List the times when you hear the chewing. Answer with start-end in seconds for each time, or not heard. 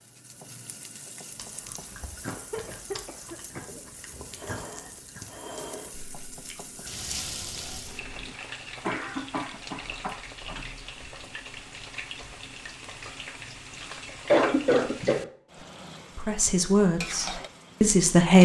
1.4-8.3.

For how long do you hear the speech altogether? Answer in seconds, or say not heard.
2 s.